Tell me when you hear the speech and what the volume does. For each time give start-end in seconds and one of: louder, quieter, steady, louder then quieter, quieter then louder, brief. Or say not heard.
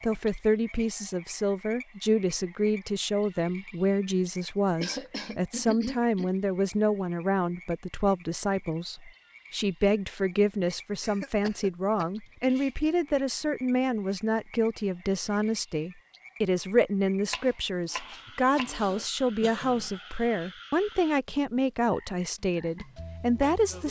0.0-23.8 steady.